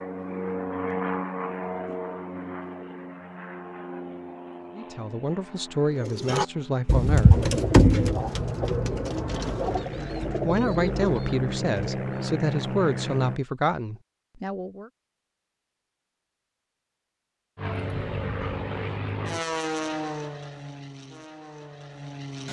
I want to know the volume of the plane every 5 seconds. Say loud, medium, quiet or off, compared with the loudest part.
loud, medium, loud, loud, medium.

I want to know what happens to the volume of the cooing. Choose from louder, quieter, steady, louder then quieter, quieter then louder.
quieter.